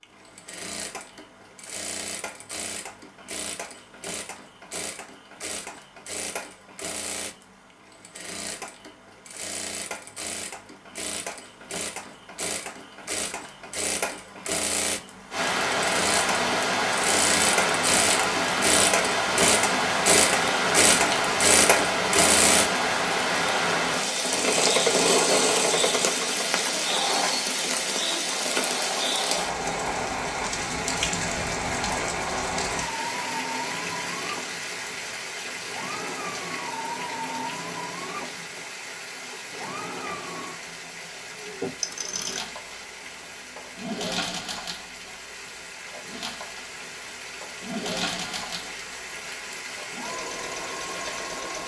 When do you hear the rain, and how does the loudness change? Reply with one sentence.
You can hear the rain from 15.3 to 51.6 s, getting quieter.